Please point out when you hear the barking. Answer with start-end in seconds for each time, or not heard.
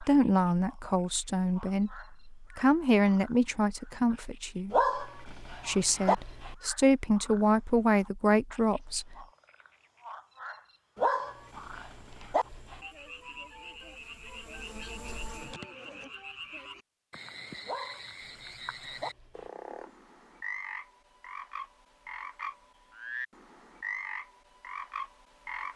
4.7-6.5, 10.9-12.8, 17.6-19.5.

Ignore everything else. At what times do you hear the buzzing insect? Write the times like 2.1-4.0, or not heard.
11.3-16.2.